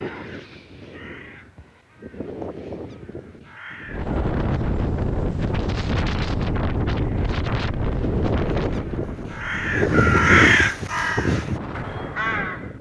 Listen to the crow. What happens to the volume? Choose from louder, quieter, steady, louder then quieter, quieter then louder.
louder then quieter.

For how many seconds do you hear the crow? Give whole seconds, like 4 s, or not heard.
10 s.